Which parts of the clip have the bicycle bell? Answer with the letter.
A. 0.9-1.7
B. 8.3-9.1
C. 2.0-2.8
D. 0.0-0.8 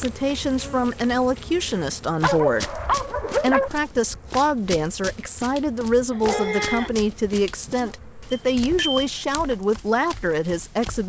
B.